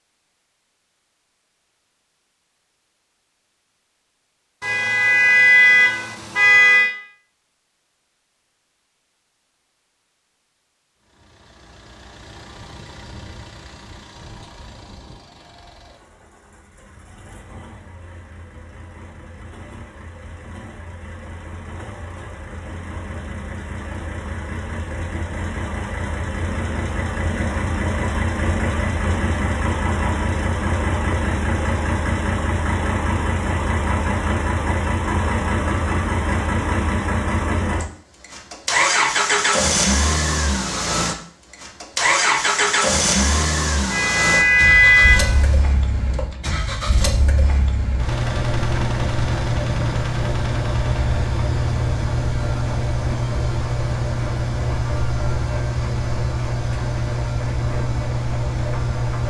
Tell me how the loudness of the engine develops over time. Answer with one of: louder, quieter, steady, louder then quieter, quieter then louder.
louder.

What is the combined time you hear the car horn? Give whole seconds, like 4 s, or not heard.
4 s.